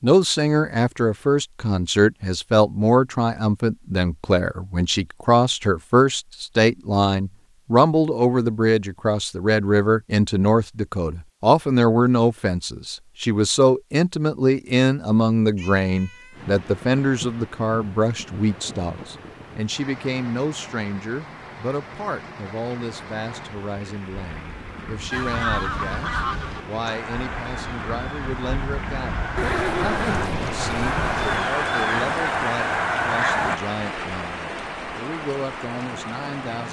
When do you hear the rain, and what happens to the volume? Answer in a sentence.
You can hear the rain from 16.3 to 36.6 s, getting louder.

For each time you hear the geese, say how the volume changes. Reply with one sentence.
You can hear the geese from 25.1 to 33.6 s, getting quieter then louder.